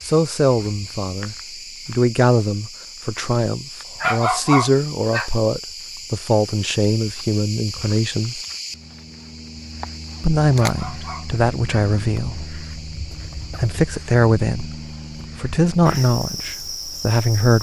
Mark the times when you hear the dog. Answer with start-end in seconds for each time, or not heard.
4.0-5.3, 10.6-11.8.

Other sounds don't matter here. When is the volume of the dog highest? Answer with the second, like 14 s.
4 s.